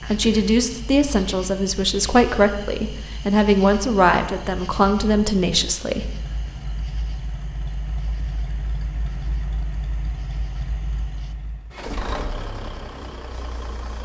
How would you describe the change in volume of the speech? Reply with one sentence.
The volume of the speech stays about the same.